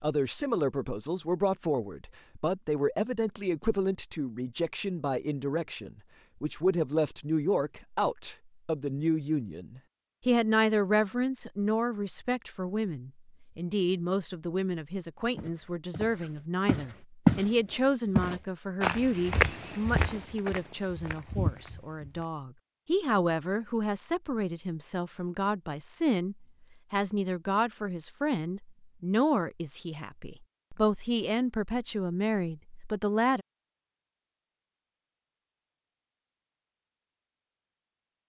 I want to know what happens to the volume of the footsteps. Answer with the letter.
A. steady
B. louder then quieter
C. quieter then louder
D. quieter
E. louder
B.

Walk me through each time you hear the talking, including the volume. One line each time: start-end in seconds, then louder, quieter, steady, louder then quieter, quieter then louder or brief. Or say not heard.
0.0-33.5 steady.